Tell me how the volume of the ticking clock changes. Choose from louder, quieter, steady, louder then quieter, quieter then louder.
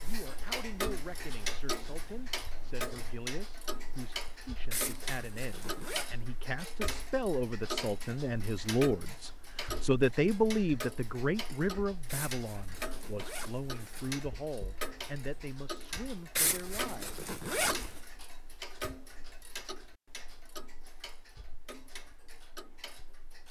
quieter.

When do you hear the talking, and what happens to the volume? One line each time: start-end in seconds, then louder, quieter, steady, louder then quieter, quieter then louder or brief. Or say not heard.
0.0-17.2 louder then quieter.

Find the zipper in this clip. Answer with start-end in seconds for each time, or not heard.
4.7-6.0, 12.1-14.1, 16.4-18.0.